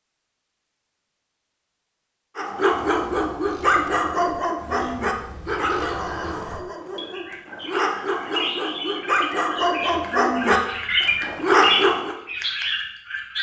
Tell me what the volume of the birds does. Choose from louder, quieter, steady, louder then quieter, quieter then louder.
louder.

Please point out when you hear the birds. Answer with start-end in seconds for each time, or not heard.
2.8-13.3.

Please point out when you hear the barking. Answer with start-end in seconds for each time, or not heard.
2.4-12.2.